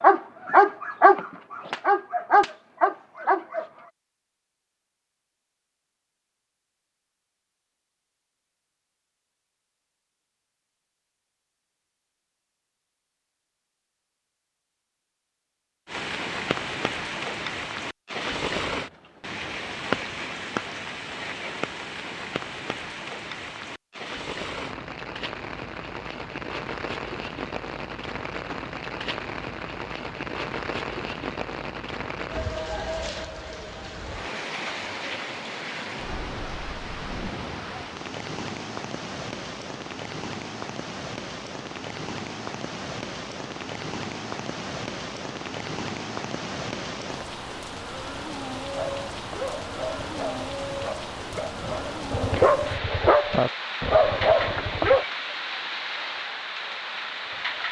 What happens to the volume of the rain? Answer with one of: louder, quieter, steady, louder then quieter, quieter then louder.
steady.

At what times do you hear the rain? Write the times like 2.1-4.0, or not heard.
15.8-57.6.